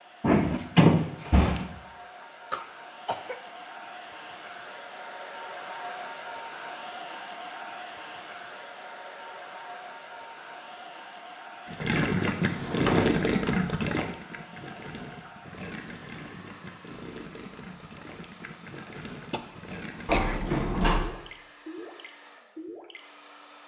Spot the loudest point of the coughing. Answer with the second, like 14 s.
20 s.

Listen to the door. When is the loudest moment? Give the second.
1 s.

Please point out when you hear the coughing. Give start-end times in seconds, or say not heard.
2.2-3.4, 19.3-20.4.